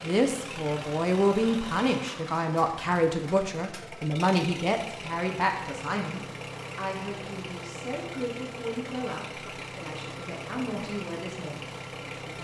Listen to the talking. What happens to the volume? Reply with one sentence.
The loudness of the talking goes down.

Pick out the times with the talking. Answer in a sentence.
The talking can be heard from 0.0 to 12.3 s.